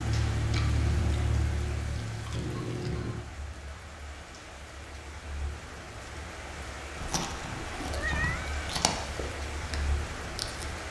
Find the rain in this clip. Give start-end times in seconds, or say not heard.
0.0-10.8.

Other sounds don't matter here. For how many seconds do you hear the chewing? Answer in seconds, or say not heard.
7 s.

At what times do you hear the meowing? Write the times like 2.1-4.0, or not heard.
2.3-3.2, 7.6-8.6.